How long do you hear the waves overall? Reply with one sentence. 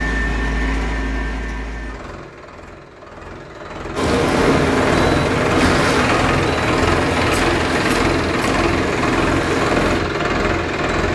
You can hear the waves for 7 seconds altogether.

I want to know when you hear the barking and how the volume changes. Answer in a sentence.
The barking can't be heard in this clip.